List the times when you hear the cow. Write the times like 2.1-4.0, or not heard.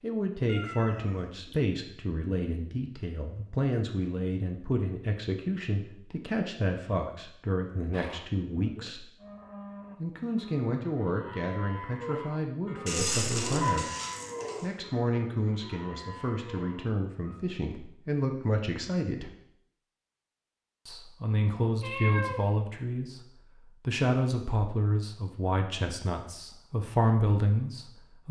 7.9-17.4.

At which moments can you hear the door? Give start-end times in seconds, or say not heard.
not heard.